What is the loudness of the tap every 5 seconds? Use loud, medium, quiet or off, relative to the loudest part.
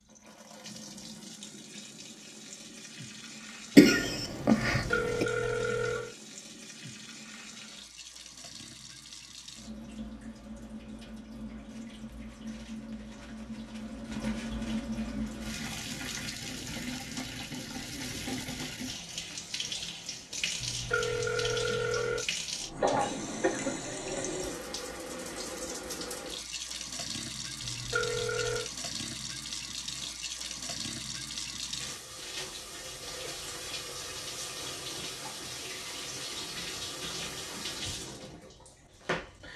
medium, medium, loud, loud, loud, loud, loud, loud.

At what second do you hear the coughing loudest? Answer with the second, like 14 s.
4 s.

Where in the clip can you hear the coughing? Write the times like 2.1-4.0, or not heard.
3.8-5.2, 22.8-23.8.